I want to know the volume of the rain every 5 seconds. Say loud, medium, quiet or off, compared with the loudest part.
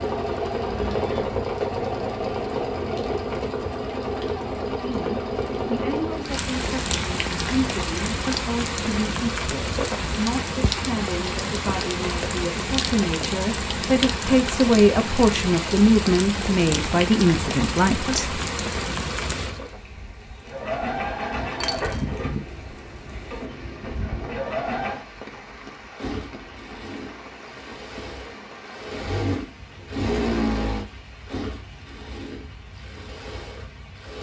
quiet, loud, loud, loud, quiet, quiet, quiet.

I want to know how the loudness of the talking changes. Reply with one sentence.
The volume of the talking goes up.